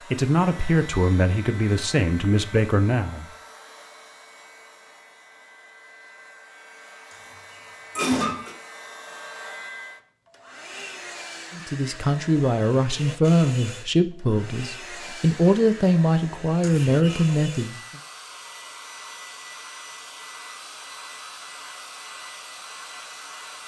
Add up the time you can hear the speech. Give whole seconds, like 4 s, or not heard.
9 s.